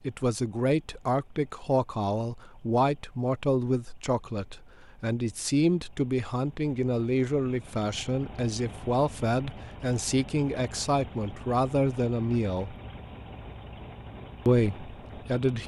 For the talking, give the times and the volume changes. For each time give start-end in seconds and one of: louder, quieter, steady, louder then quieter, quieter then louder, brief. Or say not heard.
0.0-12.8 steady
14.4-15.6 brief.